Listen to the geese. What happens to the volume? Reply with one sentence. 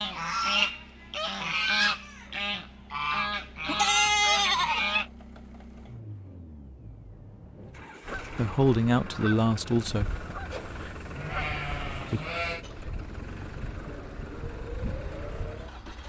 The volume of the geese goes down.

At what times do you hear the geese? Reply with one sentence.
You can hear the geese from 0.0 to 5.0 s and from 8.0 to 16.0 s.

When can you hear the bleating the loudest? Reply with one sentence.
The volume of the bleating peaks at 4 seconds.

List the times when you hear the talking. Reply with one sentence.
The talking can be heard from 8.3 to 10.2 s.